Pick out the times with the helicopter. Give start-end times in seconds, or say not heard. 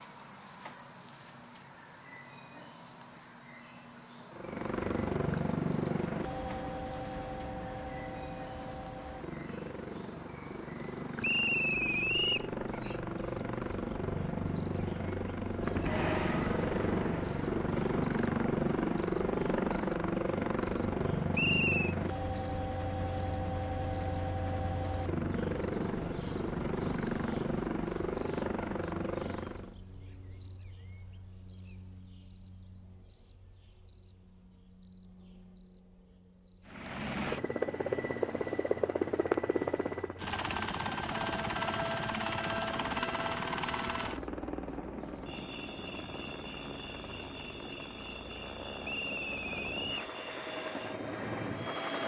4.3-29.8, 36.6-52.0.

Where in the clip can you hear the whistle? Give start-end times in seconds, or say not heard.
11.2-12.5, 21.3-21.9, 48.8-50.1.